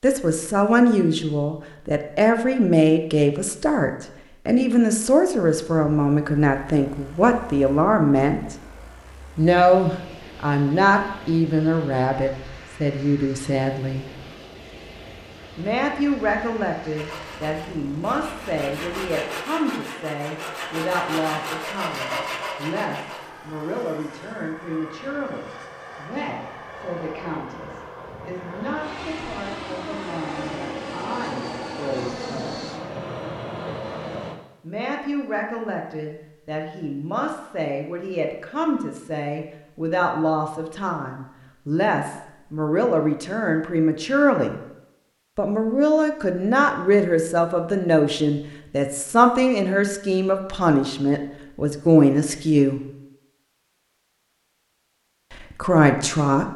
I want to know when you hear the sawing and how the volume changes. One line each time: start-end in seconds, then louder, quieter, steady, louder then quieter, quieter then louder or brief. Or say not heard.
16.9-23.3 louder.